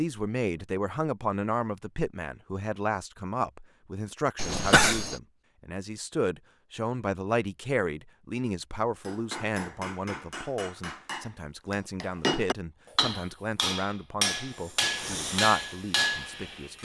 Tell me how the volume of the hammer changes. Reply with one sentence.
The loudness of the hammer goes up.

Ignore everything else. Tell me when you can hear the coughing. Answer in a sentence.
You can hear the coughing from 4.3 to 5.2 s.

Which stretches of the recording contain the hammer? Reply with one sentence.
The hammer can be heard from 8.8 to 16.8 s.